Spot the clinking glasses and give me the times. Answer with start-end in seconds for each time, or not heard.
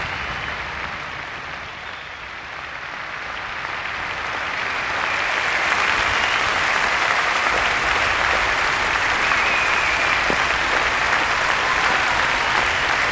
not heard.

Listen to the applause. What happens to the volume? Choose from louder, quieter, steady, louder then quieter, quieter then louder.
louder.